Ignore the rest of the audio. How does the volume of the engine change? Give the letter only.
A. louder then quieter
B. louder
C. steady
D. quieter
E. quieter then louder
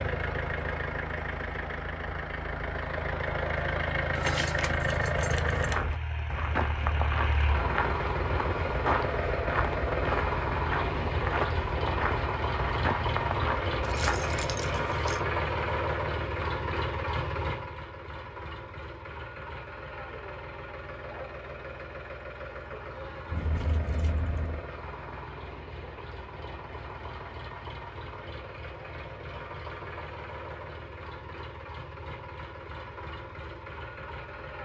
D.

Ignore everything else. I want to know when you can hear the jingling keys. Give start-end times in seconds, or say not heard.
4.2-5.8, 13.8-15.2, 23.3-24.6.